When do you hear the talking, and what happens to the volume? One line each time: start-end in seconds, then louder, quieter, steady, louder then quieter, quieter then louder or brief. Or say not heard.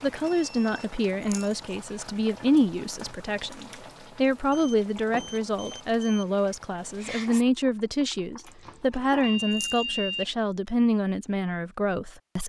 0.0-12.4 steady.